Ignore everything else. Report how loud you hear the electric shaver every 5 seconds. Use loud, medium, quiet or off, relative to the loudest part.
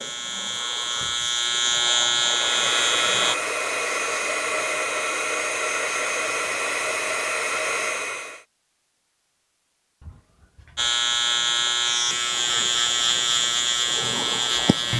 loud, off, loud.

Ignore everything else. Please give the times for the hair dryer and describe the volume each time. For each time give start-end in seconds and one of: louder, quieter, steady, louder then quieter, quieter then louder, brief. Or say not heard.
2.2-8.4 steady.